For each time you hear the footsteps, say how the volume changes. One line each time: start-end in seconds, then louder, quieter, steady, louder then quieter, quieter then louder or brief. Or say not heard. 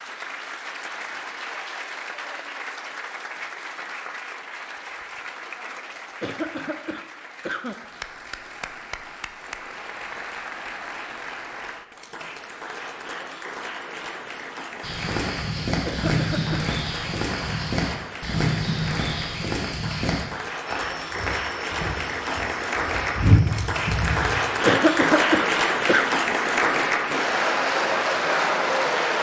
14.8-24.4 quieter then louder.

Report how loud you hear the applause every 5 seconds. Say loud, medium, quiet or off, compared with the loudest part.
quiet, quiet, quiet, quiet, medium, loud.